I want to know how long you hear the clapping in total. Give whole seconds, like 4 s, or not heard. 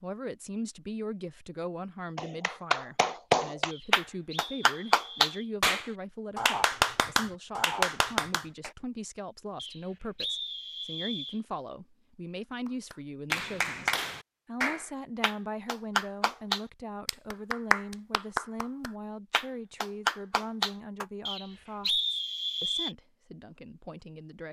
15 s.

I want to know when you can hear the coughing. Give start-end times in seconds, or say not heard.
not heard.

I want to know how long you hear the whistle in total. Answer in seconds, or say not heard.
5 s.